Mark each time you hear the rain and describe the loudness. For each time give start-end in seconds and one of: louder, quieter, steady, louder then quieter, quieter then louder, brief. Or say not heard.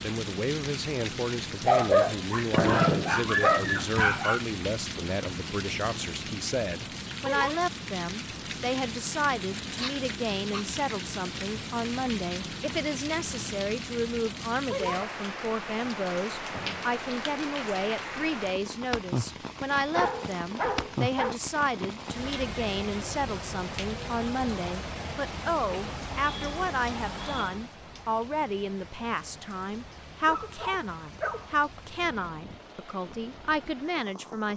0.0-34.5 quieter.